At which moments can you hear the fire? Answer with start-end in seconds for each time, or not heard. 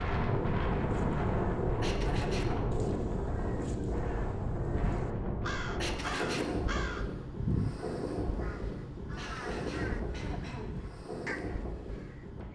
not heard.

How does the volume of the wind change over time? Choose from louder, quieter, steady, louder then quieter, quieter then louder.
quieter.